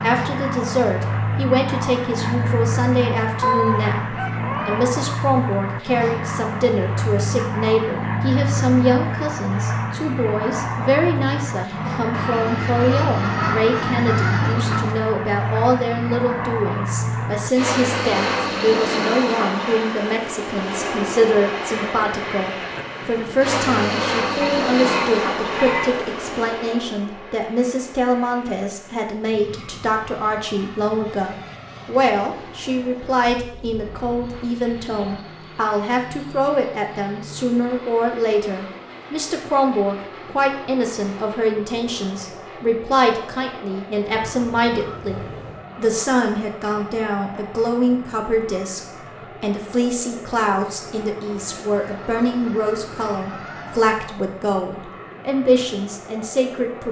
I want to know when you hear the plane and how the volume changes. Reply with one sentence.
The plane can be heard from 0.0 to 56.8 s, getting quieter.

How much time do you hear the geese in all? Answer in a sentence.
You can hear the geese for 12 seconds altogether.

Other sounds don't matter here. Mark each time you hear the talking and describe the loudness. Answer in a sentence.
The talking can be heard from 0.0 to 56.8 s, at a steady volume.